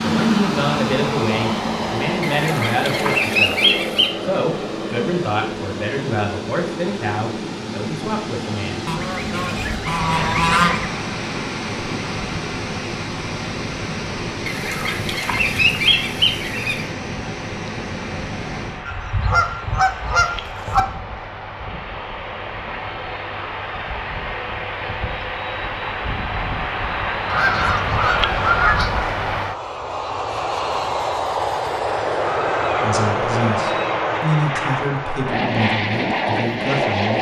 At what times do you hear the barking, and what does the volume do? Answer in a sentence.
You can't hear the barking here.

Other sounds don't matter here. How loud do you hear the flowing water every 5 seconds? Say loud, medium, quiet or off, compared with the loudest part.
medium, medium, loud, loud, off, off, off, off.